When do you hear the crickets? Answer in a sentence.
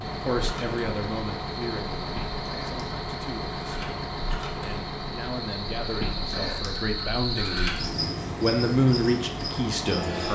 You can hear the crickets from 0.1 to 10.3 s.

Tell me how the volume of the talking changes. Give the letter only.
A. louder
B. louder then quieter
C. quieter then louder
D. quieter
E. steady
C.